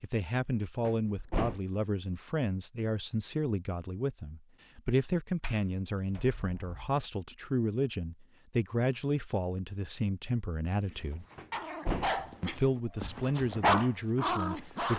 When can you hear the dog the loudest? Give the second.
14 s.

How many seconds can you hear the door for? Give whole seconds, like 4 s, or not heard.
3 s.